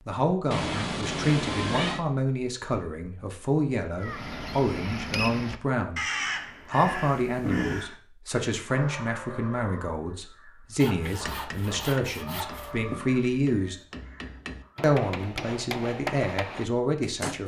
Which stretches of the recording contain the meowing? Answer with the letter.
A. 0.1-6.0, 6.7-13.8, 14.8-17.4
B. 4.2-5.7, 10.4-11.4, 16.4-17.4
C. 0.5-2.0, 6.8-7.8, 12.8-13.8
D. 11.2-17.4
C.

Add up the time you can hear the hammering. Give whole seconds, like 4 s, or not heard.
6 s.